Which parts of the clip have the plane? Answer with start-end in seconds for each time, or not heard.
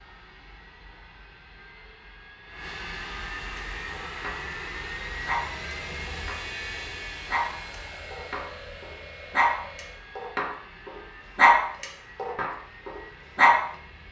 0.0-14.0.